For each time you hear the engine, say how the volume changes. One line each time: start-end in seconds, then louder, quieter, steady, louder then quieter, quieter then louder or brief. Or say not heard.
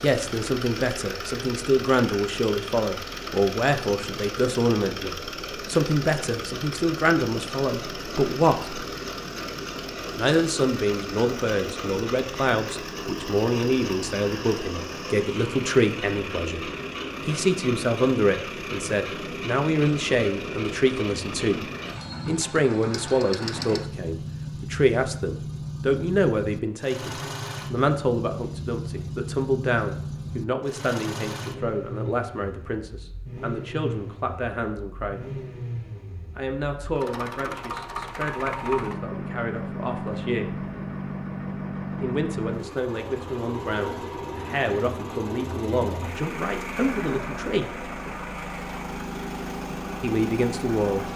0.0-51.1 steady.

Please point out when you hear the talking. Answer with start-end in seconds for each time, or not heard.
0.0-8.8, 10.2-21.6, 22.2-35.2, 36.4-40.6, 42.0-47.9, 50.0-51.1.